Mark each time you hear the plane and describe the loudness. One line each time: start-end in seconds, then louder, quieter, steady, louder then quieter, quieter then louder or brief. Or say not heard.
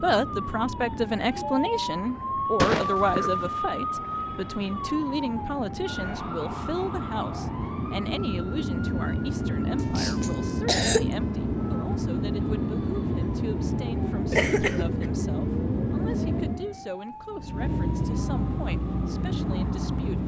0.0-20.2 louder.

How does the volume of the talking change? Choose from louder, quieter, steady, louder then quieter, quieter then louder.
quieter.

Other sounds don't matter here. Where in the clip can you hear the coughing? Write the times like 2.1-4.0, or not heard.
2.5-3.5, 9.9-11.1, 14.3-15.1.